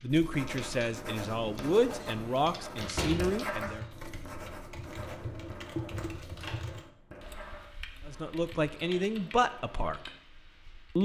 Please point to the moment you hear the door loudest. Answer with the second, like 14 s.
3 s.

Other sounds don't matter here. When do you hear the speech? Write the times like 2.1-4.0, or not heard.
0.0-3.9, 8.1-10.1.